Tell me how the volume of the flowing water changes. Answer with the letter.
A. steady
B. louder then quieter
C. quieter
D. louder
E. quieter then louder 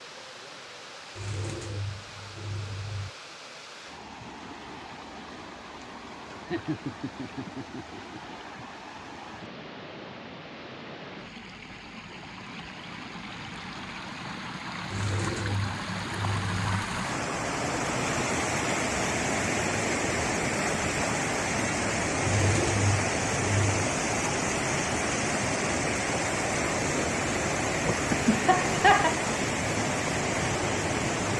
D.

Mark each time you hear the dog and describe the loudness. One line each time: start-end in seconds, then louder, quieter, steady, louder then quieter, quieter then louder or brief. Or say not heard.
not heard.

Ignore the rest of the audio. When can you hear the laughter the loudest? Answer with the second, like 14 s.
29 s.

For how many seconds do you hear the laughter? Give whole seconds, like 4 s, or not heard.
3 s.